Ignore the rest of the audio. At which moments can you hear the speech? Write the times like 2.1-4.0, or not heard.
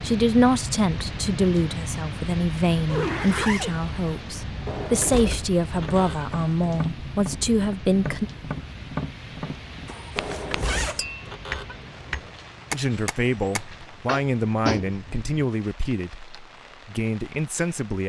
0.0-8.3, 12.7-18.0.